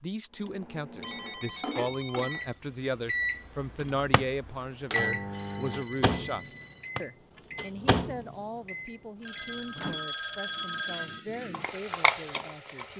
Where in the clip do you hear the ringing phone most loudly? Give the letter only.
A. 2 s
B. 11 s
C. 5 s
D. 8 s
B.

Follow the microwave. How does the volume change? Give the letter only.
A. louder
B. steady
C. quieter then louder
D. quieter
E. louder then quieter
A.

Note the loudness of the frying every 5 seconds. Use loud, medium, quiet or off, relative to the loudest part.
medium, off, loud.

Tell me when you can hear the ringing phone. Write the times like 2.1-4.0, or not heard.
1.0-2.5, 5.3-6.9, 9.2-11.2.